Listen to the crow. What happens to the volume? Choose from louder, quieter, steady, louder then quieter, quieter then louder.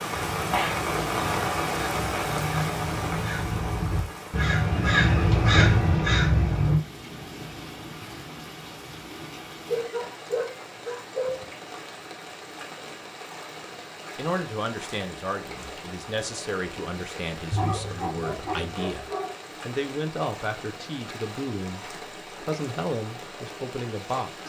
louder.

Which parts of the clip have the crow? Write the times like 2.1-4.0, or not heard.
0.1-6.8.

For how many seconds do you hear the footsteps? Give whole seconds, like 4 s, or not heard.
not heard.